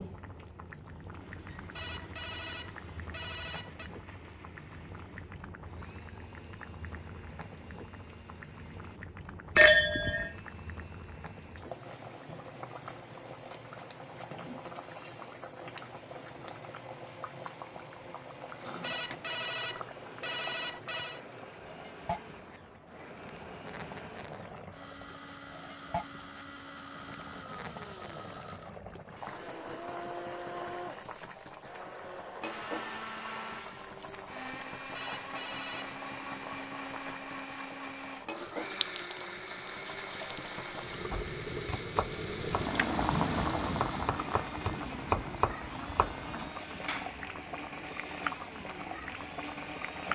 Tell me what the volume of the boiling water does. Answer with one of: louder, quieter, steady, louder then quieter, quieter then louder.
louder.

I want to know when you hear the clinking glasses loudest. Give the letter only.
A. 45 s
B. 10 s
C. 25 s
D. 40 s
B.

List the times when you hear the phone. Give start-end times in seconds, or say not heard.
1.8-3.9, 18.8-21.2, 34.9-36.0.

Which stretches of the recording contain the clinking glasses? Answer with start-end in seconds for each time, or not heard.
9.6-10.3, 38.8-40.5.